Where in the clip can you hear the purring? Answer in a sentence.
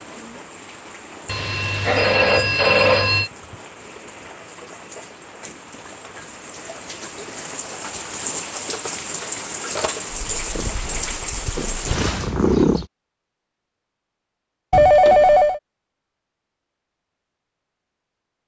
You can hear the purring from 10.1 to 12.8 s.